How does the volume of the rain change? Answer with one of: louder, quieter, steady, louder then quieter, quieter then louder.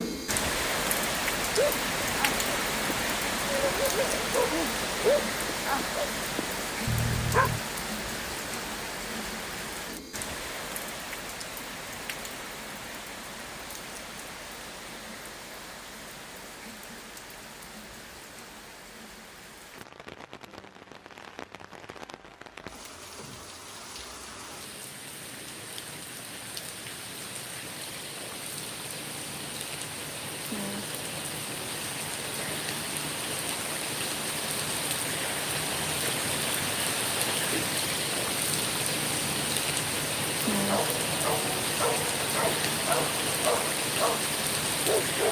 quieter then louder.